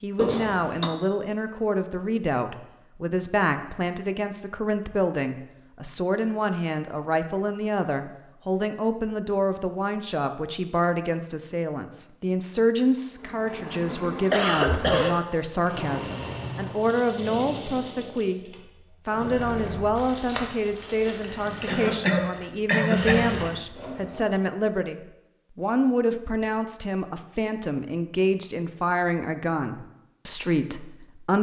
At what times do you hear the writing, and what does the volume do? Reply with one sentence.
The writing can't be heard in this clip.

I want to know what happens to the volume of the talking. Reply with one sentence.
The volume of the talking stays about the same.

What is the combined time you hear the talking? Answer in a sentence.
The talking can be heard for 31 seconds in total.